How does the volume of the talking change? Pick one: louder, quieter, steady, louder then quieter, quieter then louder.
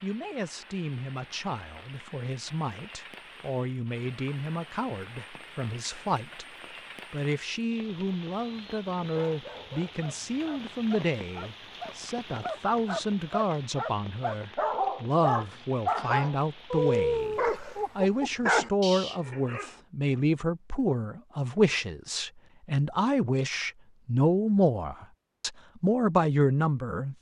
louder.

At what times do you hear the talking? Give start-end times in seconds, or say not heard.
0.0-6.5, 7.1-27.1.